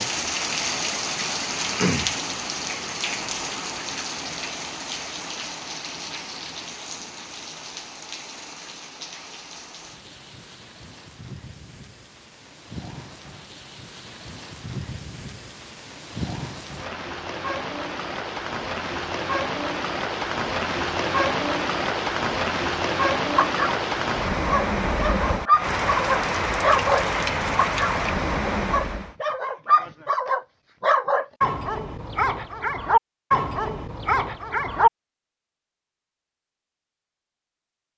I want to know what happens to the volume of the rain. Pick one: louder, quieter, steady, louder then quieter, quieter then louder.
quieter then louder.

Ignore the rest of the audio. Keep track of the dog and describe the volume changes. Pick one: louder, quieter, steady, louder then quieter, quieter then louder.
steady.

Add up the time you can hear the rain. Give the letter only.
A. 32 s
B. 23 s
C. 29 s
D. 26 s
C.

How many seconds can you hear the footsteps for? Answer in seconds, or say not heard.
not heard.